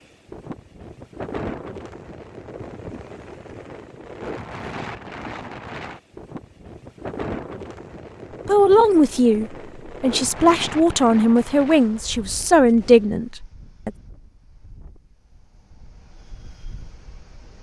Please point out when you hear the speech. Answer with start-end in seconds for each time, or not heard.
8.4-13.9.